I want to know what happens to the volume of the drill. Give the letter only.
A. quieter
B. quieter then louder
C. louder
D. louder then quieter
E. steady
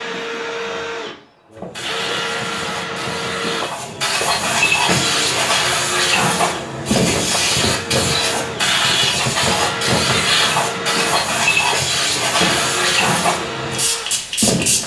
E.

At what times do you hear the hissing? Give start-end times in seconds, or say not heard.
1.5-14.8.